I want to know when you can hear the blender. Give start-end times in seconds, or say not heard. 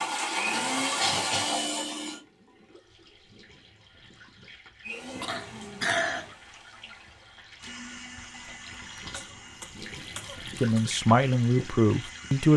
0.0-2.2, 4.8-12.5.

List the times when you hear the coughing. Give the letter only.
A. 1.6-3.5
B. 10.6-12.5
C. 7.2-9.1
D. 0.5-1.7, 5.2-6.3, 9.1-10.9
D.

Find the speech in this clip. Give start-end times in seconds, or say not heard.
10.6-12.5.